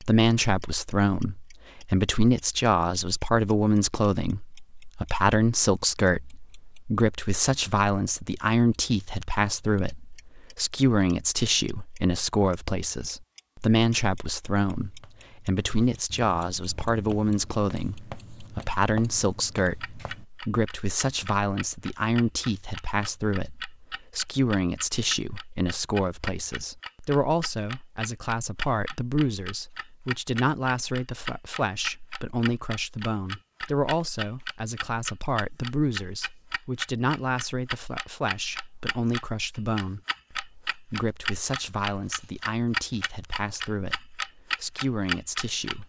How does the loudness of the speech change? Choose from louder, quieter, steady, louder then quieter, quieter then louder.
quieter.